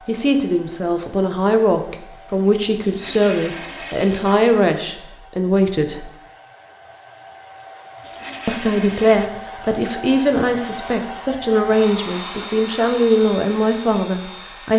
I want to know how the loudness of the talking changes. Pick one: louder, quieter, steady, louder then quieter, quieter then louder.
steady.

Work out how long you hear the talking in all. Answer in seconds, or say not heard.
12 s.